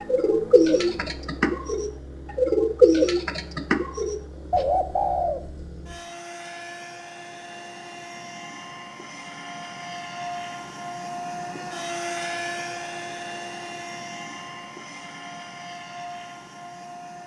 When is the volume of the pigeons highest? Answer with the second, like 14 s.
3 s.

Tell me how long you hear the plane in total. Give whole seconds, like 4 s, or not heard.
17 s.